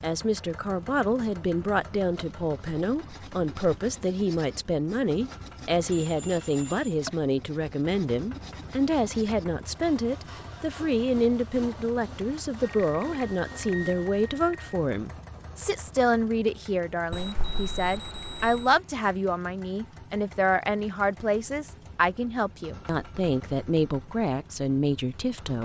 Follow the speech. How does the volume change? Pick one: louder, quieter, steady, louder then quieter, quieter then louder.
steady.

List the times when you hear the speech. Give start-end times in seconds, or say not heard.
0.0-25.6.